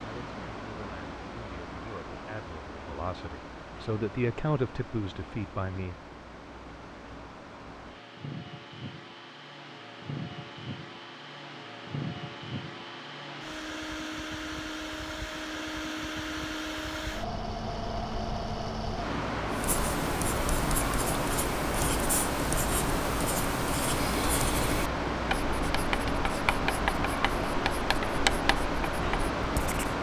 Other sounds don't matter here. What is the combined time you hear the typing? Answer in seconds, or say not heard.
not heard.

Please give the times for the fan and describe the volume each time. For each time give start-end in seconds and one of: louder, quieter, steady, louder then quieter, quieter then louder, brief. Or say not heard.
0.0-29.9 louder.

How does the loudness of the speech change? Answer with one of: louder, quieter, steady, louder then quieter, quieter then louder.
louder.